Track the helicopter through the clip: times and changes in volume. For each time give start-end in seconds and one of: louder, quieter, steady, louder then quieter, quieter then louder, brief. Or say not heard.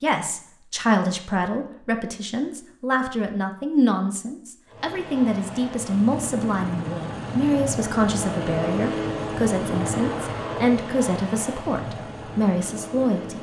4.7-13.3 louder then quieter.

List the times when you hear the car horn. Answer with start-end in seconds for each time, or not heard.
not heard.